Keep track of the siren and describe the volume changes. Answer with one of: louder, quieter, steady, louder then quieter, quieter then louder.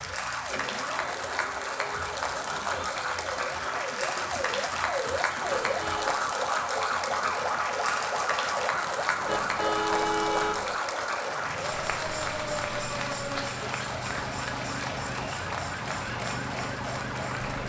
louder then quieter.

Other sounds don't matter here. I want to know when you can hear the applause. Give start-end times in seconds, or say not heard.
0.0-17.6.